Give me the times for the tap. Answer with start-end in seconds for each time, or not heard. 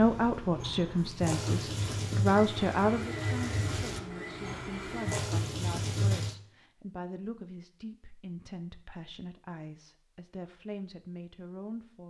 0.0-6.3.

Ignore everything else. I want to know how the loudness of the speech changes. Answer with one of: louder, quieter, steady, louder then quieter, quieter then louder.
quieter.